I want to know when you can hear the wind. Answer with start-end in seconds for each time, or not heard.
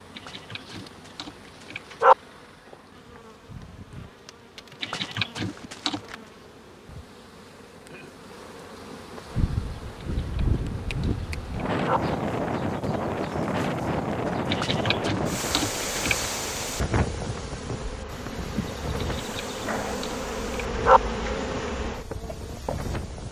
9.3-23.2.